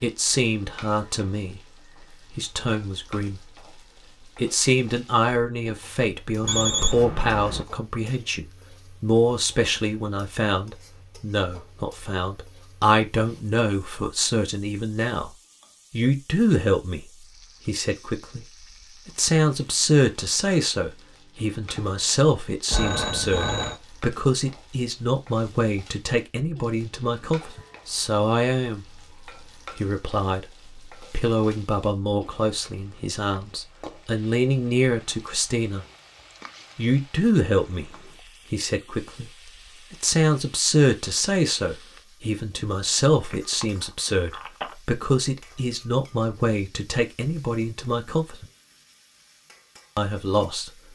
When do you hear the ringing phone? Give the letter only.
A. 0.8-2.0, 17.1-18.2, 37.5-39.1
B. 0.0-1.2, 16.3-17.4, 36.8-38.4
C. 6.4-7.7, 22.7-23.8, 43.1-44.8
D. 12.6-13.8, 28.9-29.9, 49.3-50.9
C.